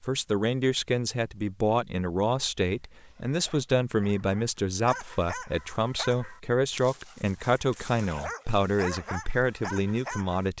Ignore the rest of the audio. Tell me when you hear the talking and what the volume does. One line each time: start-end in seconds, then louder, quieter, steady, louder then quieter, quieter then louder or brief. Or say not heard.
0.0-10.5 steady.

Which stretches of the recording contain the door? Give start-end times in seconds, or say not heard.
not heard.